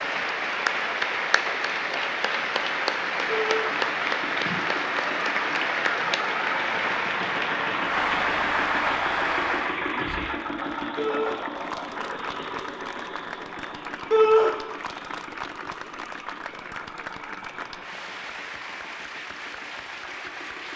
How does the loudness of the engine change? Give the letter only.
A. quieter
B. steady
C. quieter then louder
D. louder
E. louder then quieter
E.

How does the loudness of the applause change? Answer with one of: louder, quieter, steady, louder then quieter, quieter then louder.
quieter.